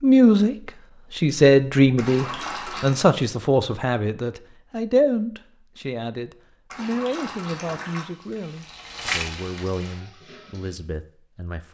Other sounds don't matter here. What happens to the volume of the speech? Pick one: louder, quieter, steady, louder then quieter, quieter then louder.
quieter.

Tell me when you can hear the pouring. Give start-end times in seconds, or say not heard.
1.9-3.0, 6.7-8.1.